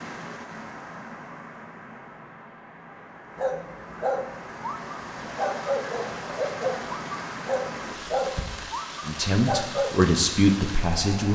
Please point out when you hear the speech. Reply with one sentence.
You can hear the speech from 9.1 to 11.3 s.